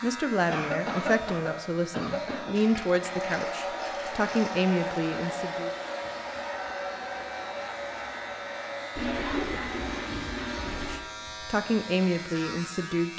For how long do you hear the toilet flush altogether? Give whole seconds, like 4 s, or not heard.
4 s.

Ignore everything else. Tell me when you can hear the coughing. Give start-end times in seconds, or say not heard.
0.5-2.5, 9.2-9.8.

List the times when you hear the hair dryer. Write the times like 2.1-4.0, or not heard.
3.0-10.1.